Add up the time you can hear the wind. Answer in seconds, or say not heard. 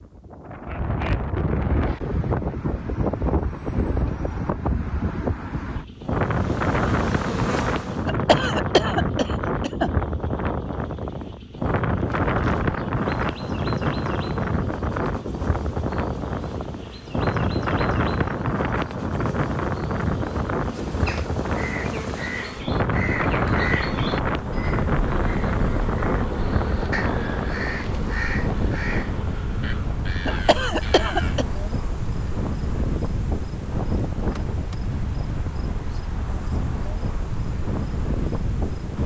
39 s.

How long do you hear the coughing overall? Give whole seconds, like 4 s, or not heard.
3 s.